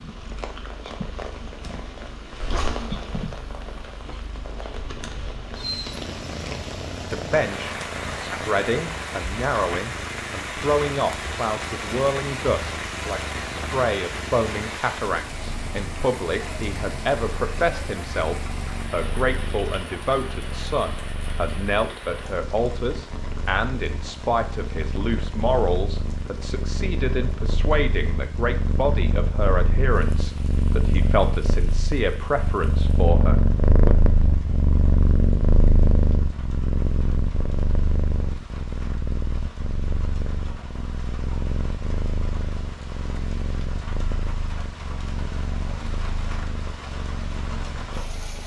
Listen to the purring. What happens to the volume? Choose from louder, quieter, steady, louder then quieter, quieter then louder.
louder then quieter.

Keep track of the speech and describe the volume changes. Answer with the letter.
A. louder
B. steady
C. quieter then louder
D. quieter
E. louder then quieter
B.